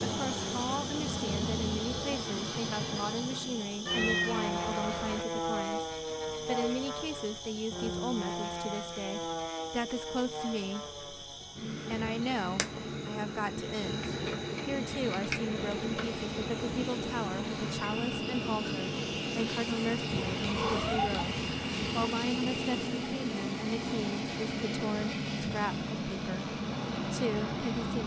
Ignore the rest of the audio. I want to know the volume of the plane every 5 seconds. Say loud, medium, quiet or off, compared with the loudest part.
loud, loud, medium, loud, loud, loud.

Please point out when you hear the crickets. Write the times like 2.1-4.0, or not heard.
0.0-23.1.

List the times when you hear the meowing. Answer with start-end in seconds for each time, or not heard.
3.9-5.2, 20.1-22.1.